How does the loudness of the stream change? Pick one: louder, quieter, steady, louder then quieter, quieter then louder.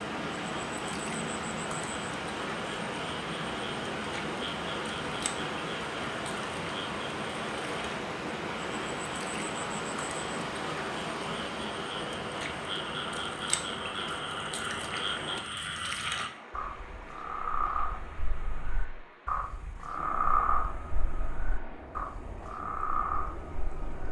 quieter.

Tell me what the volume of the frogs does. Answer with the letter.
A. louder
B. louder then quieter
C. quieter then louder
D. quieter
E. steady
A.